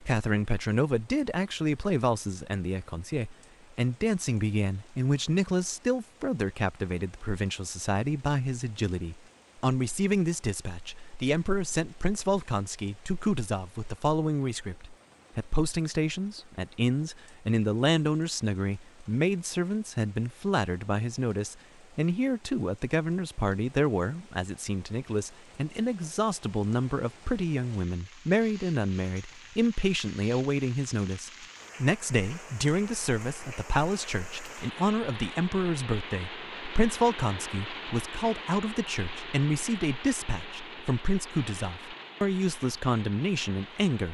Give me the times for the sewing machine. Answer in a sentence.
The sewing machine can't be heard in this clip.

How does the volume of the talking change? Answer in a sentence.
The volume of the talking stays about the same.